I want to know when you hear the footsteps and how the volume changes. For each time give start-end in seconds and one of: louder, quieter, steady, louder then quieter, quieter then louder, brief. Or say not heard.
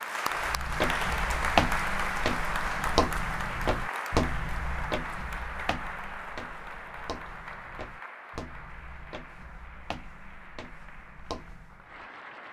0.3-12.1 quieter.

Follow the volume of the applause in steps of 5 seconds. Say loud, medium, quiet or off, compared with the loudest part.
loud, medium, quiet.